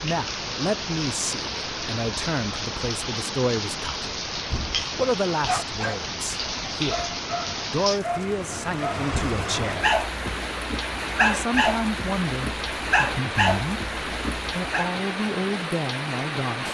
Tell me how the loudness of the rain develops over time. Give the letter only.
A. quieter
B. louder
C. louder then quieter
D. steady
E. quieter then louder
D.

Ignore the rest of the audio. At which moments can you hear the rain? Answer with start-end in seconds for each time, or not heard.
0.0-16.7.